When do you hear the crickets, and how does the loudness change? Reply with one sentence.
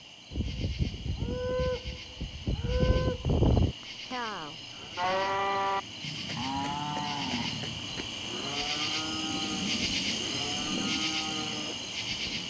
You can hear the crickets from 0.0 to 12.4 s, getting louder.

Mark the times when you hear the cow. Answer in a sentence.
The cow can be heard from 0.3 to 11.9 s.